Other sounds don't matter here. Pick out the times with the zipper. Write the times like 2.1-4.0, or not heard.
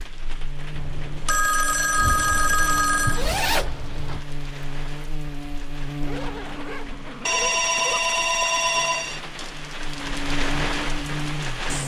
1.9-4.2, 6.0-8.0.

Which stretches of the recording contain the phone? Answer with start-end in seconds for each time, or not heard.
0.8-3.2, 7.2-9.2.